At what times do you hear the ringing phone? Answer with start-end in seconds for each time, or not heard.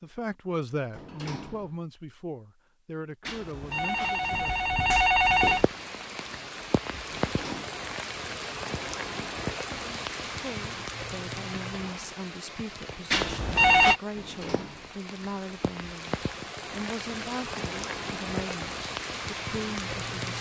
3.2-5.7, 13.1-14.0.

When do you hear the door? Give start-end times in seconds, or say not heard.
0.9-1.8, 7.1-7.8, 14.2-15.0.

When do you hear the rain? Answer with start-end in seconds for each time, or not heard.
5.3-20.3.